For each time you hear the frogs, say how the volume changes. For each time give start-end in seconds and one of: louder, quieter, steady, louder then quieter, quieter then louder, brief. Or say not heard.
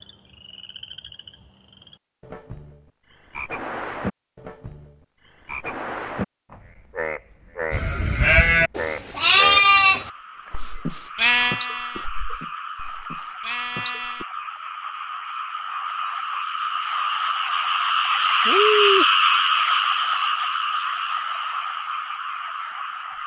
0.0-23.2 louder.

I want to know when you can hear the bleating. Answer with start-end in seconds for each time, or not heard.
7.7-14.2.